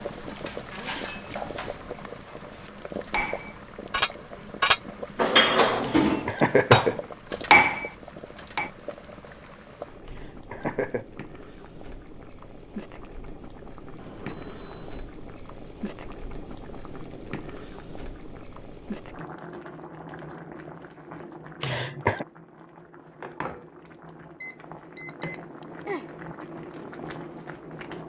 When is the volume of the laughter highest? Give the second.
7 s.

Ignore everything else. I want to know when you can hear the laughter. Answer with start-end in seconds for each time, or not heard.
5.8-7.0, 10.1-11.1, 21.6-22.2.